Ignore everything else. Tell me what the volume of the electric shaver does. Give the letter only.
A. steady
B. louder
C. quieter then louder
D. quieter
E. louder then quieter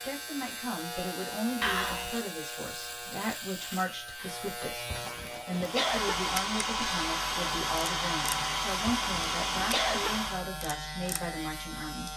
A.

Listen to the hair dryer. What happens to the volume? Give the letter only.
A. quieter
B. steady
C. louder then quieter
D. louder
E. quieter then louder
B.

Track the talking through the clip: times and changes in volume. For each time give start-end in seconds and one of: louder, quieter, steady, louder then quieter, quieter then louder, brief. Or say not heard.
0.0-12.1 steady.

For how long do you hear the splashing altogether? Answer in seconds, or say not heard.
not heard.